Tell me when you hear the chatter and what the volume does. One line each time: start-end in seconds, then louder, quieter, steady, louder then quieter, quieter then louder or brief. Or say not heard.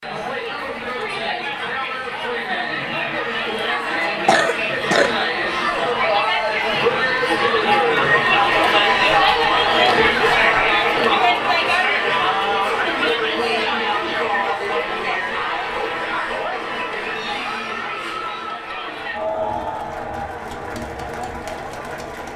0.0-22.3 louder then quieter.